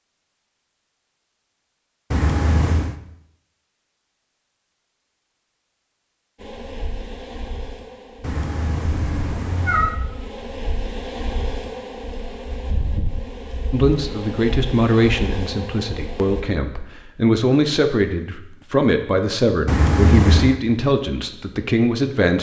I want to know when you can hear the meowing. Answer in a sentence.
You can hear the meowing from 2.1 to 3.0 s, from 8.2 to 10.0 s and from 19.6 to 20.6 s.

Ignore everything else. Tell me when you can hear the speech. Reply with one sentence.
The speech can be heard from 13.7 to 22.3 s.